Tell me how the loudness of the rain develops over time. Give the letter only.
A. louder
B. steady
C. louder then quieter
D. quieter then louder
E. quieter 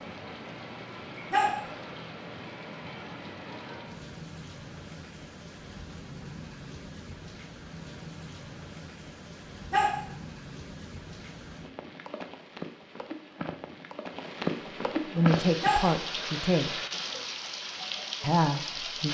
A.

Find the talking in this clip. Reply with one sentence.
The talking can be heard from 15.1 to 16.8 s and from 18.2 to 19.1 s.